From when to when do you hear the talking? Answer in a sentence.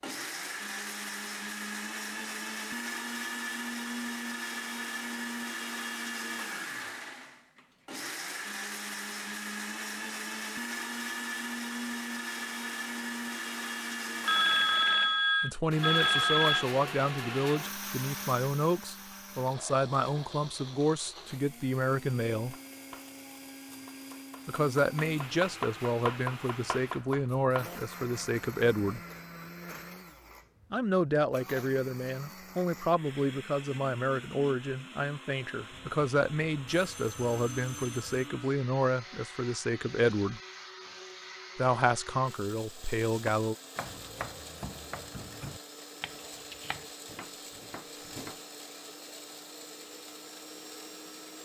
You can hear the talking from 15.4 to 22.6 s, from 24.4 to 29.0 s, from 30.7 to 40.4 s and from 41.5 to 43.5 s.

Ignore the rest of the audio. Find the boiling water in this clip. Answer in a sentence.
You can't hear the boiling water here.